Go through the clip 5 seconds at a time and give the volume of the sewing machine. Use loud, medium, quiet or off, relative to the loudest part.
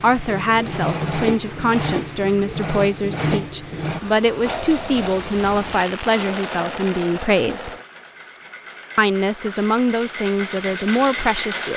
loud, medium, loud.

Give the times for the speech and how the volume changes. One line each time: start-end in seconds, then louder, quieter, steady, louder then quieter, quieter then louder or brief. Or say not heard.
0.0-7.8 steady
8.9-11.7 brief.